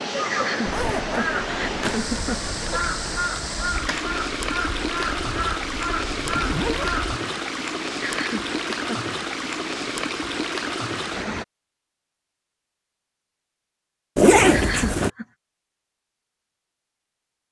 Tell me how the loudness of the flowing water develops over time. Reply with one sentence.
The loudness of the flowing water stays about the same.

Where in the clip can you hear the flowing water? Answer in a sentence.
The flowing water can be heard from 0.0 to 11.4 s.